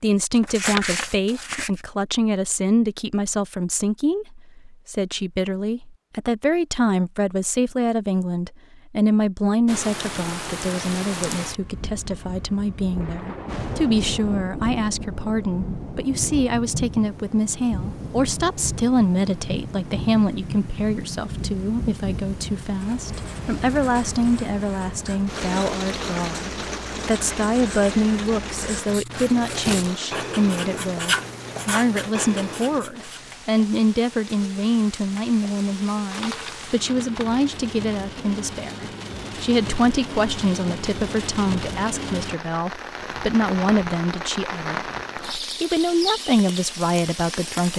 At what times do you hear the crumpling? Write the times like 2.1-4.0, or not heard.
0.4-1.7, 29.4-29.9, 36.1-37.5.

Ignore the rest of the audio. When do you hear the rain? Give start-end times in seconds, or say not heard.
9.7-47.7.